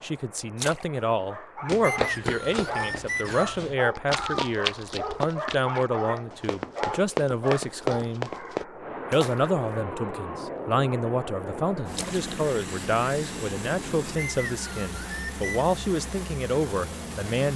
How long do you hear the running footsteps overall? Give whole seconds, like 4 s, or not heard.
7 s.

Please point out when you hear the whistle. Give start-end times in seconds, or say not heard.
1.8-3.6, 14.2-15.7.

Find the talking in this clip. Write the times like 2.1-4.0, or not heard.
0.0-8.3, 9.1-17.5.